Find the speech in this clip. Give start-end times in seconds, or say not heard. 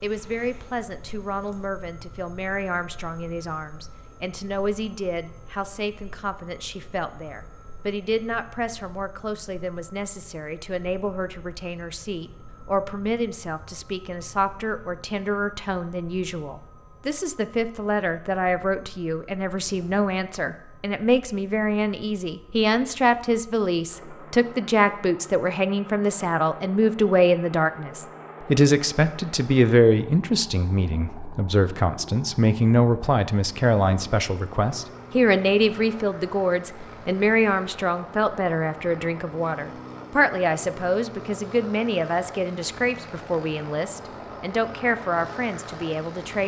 0.0-46.4.